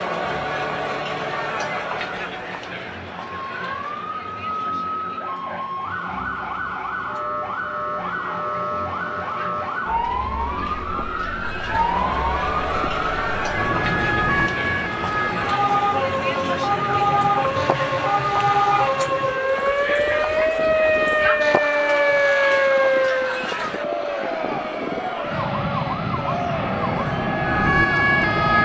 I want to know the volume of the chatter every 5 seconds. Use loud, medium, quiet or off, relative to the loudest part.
loud, quiet, loud, loud, loud, loud.